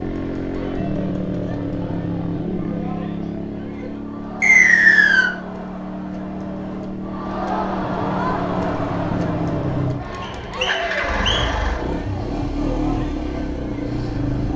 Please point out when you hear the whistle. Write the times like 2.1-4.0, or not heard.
4.4-5.3, 10.2-11.4.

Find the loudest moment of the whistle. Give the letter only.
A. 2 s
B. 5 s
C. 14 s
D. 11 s
B.